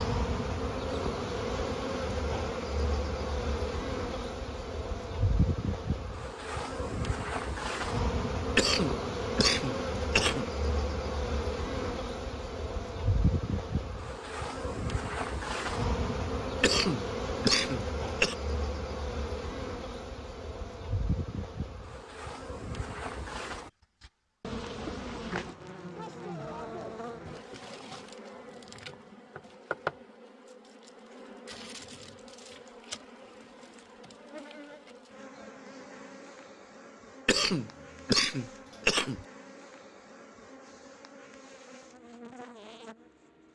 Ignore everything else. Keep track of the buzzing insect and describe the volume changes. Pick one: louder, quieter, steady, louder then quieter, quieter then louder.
quieter.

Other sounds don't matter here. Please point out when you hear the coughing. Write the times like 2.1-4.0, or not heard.
8.6-10.5, 16.6-18.4, 37.2-39.2.